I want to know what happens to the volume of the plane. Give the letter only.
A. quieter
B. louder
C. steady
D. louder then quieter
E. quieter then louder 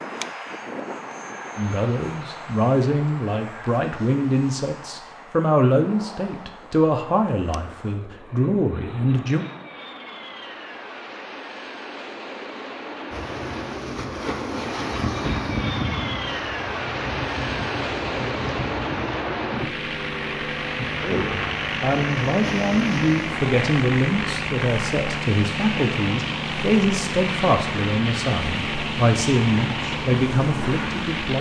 B.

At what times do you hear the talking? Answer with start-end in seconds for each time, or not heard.
1.6-9.4, 21.0-31.3.